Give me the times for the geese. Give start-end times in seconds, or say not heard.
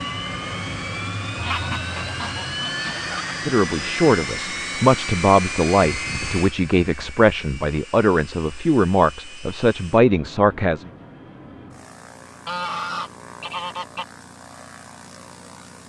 1.4-3.4, 5.9-7.2, 12.4-14.1.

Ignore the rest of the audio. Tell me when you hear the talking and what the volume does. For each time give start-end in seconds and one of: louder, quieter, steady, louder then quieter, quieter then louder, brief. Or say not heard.
3.3-10.8 steady.